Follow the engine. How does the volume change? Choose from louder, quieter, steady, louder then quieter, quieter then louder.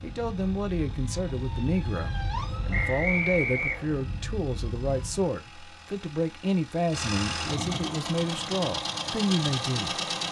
louder.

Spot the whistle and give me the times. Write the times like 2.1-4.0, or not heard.
2.7-4.0.